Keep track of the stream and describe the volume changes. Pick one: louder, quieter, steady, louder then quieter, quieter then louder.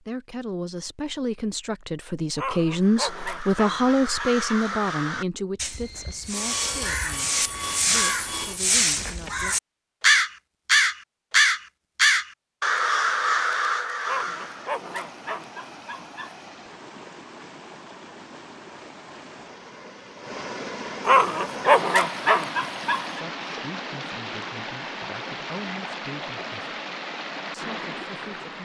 louder.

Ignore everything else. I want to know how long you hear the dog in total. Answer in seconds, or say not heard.
7 s.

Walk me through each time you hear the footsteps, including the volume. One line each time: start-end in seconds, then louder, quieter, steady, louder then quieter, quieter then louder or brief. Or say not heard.
not heard.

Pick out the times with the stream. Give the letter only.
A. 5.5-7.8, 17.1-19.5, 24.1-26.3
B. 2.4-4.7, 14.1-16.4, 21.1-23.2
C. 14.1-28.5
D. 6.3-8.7
C.